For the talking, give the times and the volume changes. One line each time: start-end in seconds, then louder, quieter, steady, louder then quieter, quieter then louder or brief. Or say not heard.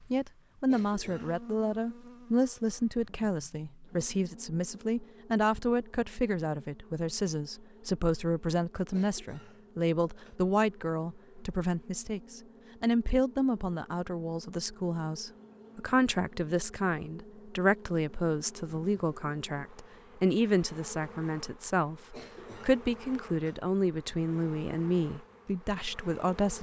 0.1-26.5 steady.